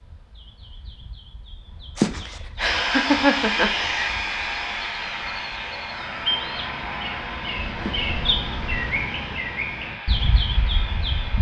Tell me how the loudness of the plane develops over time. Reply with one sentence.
The loudness of the plane goes down.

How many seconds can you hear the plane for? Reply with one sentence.
The plane can be heard for 9 seconds in total.